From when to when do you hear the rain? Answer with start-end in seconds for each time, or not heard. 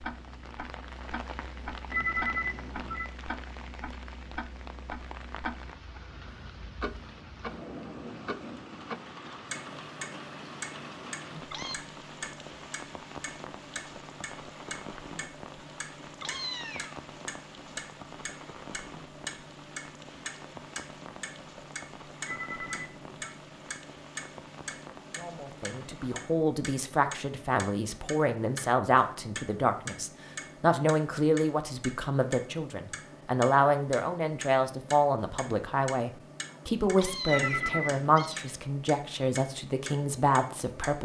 0.0-26.4.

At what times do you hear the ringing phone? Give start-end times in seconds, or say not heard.
1.9-3.1, 22.2-23.3, 37.2-38.1.